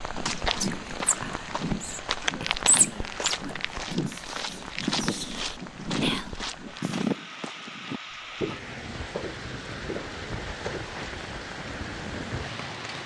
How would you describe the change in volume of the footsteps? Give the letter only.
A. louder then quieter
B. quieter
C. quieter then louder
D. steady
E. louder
B.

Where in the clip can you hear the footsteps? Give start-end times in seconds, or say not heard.
0.1-11.0.